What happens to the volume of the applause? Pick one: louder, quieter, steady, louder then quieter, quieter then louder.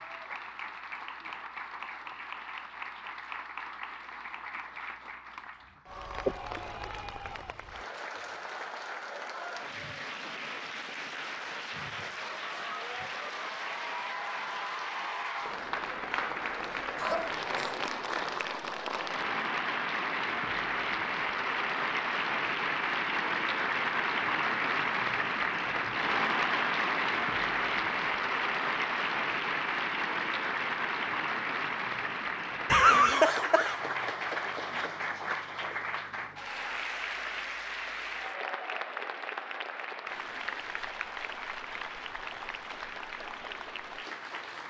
louder then quieter.